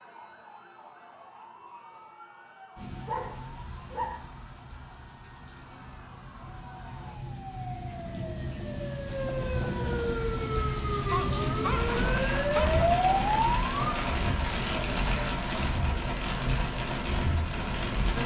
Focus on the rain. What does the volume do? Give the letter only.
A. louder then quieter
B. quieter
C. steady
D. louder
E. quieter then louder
D.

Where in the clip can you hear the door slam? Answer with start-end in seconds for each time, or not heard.
not heard.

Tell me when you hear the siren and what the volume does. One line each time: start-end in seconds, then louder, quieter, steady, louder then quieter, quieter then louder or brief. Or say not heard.
0.0-13.9 louder.